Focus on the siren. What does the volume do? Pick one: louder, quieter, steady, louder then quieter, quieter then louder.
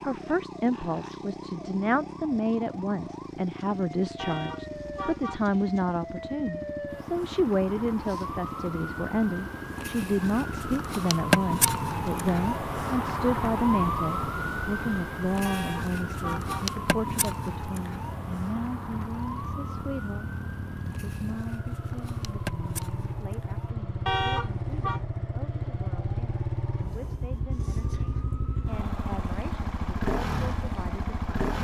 louder then quieter.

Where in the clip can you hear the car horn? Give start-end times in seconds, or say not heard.
4.2-5.5, 15.4-16.7, 24.1-25.0.